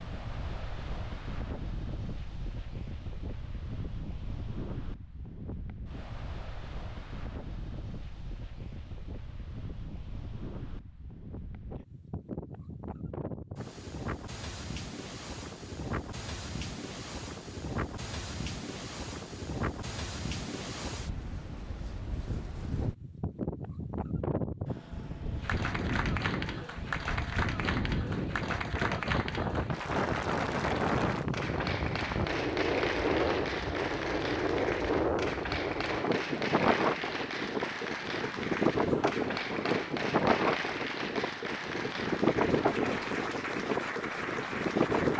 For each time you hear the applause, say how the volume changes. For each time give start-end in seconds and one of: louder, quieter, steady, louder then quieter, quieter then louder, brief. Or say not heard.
25.4-45.1 steady.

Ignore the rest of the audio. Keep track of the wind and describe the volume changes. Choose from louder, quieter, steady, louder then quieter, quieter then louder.
louder.